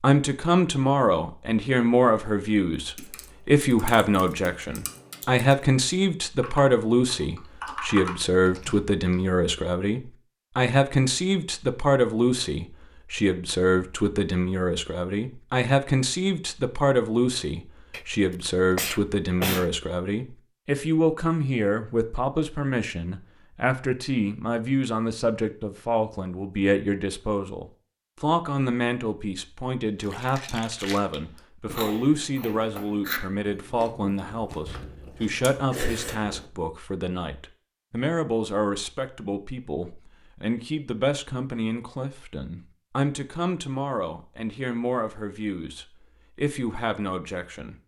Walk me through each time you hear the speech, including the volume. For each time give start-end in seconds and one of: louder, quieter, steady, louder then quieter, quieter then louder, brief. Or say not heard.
0.0-47.8 quieter.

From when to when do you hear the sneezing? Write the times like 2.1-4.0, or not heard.
17.9-19.7.